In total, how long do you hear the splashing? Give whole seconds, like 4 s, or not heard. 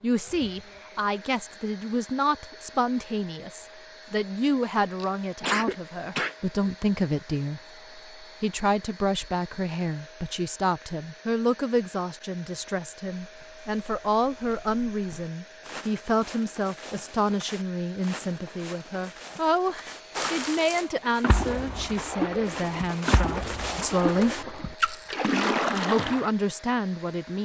6 s.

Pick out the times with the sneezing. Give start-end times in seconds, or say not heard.
5.0-6.3.